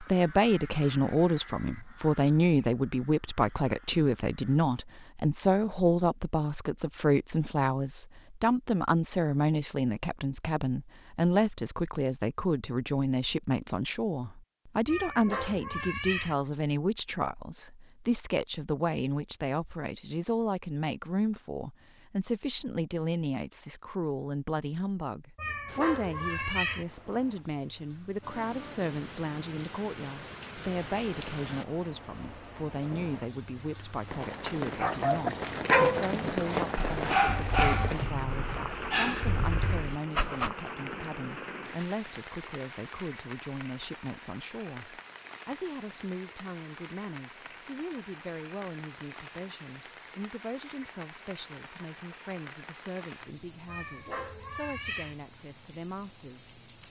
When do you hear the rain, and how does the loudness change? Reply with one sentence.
You can hear the rain from 25.6 to 56.8 s, getting louder then quieter.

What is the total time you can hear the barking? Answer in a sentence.
The barking can be heard for 6 seconds in total.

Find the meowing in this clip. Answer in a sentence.
You can hear the meowing from 14.8 to 16.4 s, from 25.4 to 26.9 s and from 53.6 to 55.1 s.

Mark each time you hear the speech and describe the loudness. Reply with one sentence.
You can hear the speech from 0.0 to 56.6 s, getting quieter.